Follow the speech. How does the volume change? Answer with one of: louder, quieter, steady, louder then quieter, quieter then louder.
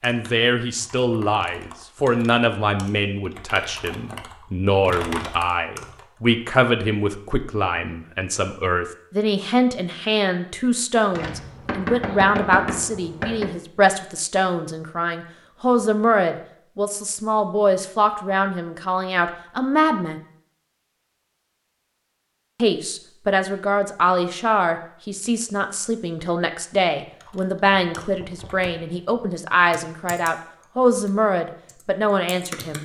steady.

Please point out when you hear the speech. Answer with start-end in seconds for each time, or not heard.
0.0-20.2, 22.6-32.8.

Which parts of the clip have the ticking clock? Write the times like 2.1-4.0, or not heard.
not heard.